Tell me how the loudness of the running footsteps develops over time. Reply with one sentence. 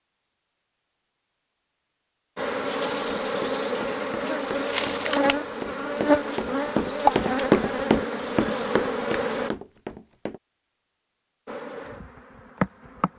The volume of the running footsteps goes up, then down.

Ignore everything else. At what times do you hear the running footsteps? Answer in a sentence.
The running footsteps can be heard from 3.2 to 10.4 s.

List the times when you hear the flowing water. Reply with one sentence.
The flowing water can't be heard in this clip.